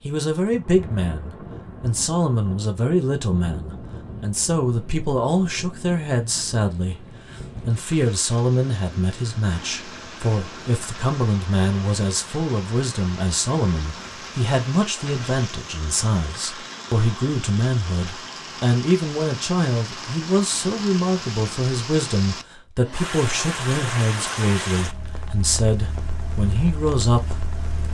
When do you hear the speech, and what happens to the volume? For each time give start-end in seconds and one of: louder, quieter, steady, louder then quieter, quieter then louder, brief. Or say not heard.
0.0-27.9 steady.